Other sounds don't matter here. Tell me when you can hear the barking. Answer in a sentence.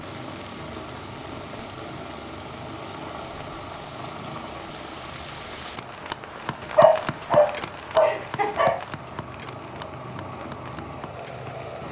You can hear the barking from 6.8 to 8.8 s.